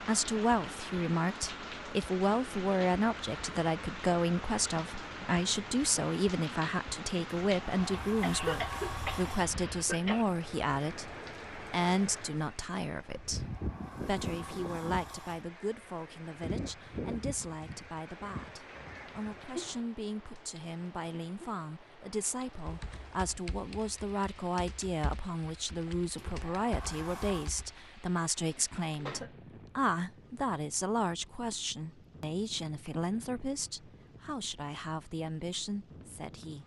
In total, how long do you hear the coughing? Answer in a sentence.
You can hear the coughing for 3 seconds altogether.